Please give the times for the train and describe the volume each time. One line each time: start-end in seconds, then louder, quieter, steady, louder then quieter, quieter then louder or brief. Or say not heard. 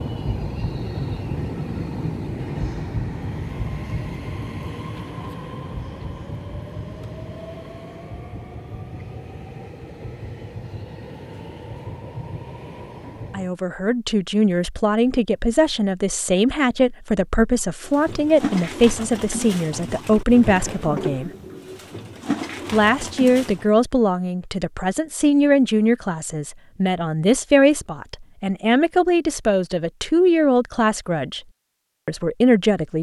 0.0-13.6 quieter.